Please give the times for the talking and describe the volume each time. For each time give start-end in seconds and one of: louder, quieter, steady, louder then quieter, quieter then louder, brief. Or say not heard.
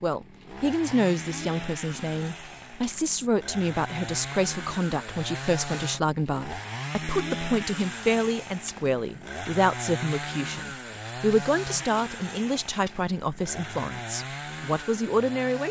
0.0-15.6 steady.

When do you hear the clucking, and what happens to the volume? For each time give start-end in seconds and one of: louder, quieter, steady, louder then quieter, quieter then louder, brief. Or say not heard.
not heard.